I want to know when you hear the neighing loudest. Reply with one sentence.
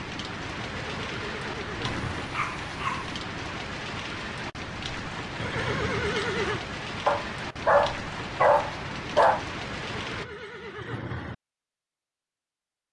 The loudest moment of the neighing is at 6 seconds.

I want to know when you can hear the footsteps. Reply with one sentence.
The footsteps can't be heard in this clip.